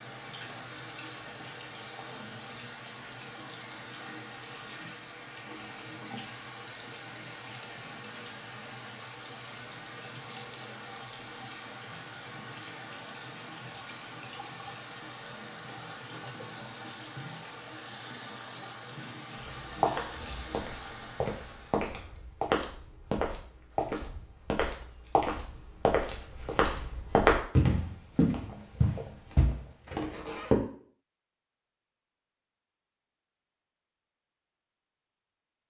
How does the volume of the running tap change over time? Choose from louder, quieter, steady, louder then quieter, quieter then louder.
steady.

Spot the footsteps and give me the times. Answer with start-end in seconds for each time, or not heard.
19.4-30.6.